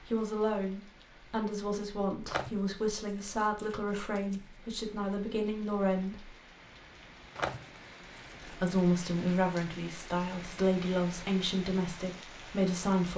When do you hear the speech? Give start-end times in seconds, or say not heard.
0.0-6.3, 8.4-13.1.